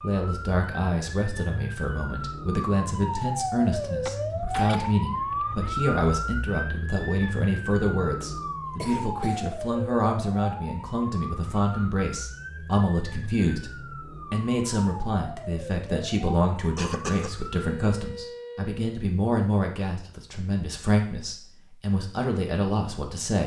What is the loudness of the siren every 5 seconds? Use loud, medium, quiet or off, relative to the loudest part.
loud, loud, medium, medium, off.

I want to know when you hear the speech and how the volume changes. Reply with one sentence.
You can hear the speech from 0.0 to 23.4 s, at a steady volume.